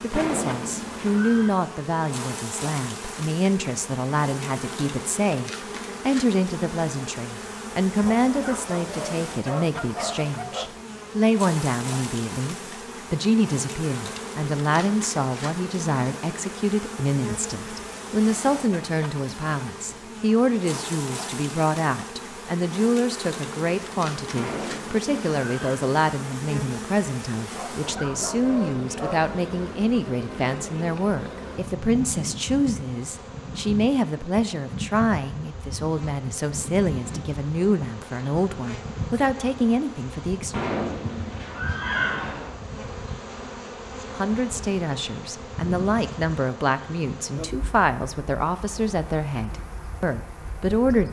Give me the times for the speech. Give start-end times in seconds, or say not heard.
0.0-40.5, 44.1-51.0.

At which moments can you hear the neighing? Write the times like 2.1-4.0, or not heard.
0.1-1.6, 24.4-25.8, 40.5-42.5.